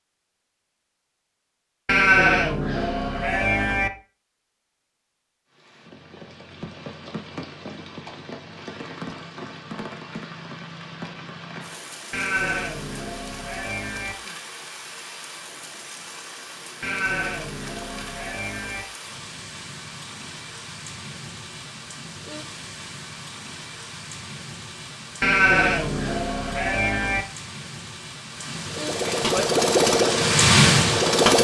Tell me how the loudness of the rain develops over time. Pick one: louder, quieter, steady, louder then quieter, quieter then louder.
louder.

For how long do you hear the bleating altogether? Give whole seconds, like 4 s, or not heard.
8 s.